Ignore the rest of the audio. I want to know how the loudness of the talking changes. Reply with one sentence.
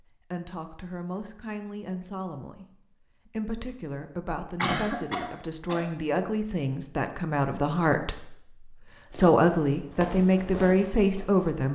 The volume of the talking goes up.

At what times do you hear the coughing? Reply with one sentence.
The coughing can be heard from 4.5 to 5.8 s.